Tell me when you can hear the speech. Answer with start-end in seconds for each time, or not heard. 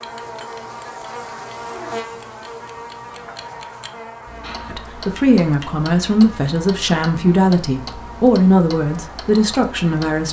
4.7-10.2.